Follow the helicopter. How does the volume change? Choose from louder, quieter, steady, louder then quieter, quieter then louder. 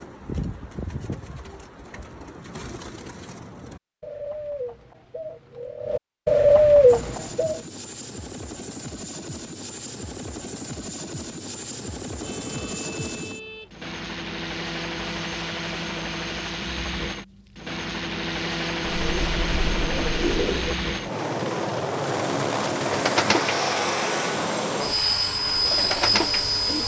louder.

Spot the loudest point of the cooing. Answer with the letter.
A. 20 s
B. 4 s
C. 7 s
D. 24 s
C.